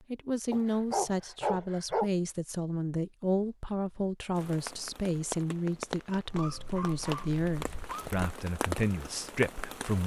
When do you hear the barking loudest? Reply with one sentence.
The loudest moment of the barking is at 2 seconds.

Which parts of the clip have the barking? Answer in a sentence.
You can hear the barking from 0.5 to 2.1 s and from 6.2 to 8.2 s.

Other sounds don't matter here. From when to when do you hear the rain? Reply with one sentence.
You can hear the rain from 4.3 to 10.0 s.